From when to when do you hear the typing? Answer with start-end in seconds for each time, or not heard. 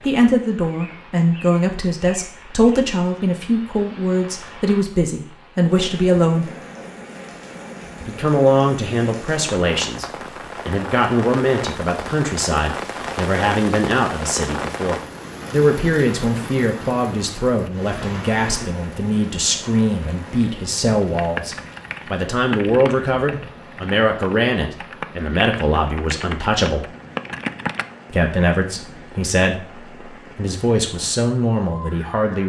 21.1-27.9.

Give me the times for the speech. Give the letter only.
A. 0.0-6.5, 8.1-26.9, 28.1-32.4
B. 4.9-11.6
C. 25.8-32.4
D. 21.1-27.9
A.